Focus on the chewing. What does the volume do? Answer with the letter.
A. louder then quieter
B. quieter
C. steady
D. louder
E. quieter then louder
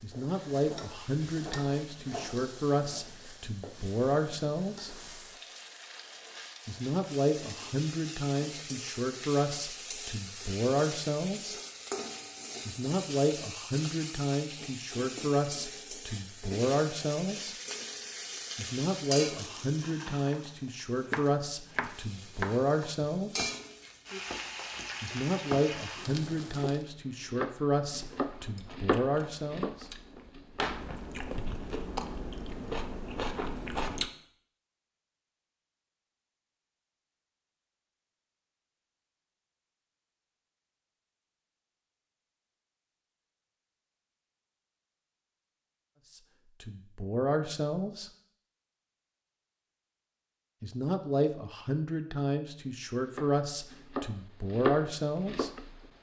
D.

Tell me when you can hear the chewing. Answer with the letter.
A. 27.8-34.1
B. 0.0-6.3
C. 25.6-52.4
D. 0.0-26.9
A.